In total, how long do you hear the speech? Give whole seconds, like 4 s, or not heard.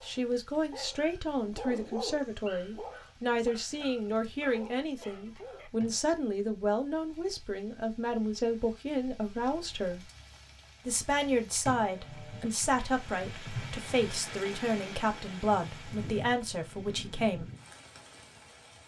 17 s.